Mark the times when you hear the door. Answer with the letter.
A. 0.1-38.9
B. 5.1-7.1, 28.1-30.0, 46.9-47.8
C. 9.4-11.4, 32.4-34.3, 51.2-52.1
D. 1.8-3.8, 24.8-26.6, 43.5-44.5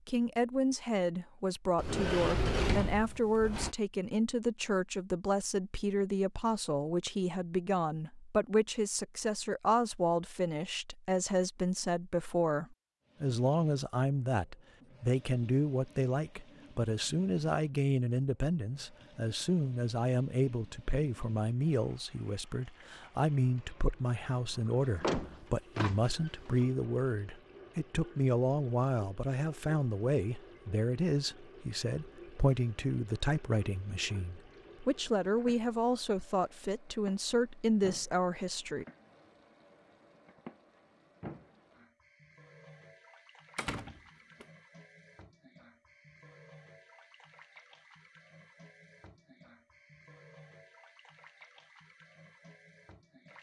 D.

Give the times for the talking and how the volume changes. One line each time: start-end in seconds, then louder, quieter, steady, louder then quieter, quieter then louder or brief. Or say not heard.
0.1-38.9 steady.